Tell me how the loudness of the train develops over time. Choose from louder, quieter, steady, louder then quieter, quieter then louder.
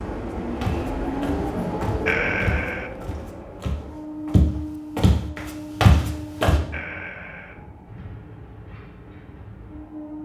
quieter.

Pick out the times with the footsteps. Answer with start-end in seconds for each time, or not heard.
0.6-6.6.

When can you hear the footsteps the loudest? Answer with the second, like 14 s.
6 s.